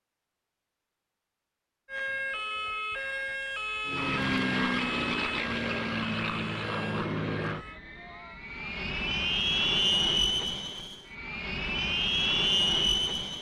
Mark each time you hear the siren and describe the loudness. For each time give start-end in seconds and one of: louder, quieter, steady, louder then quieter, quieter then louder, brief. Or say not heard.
1.9-7.8 quieter.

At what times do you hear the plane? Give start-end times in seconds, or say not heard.
3.9-13.3.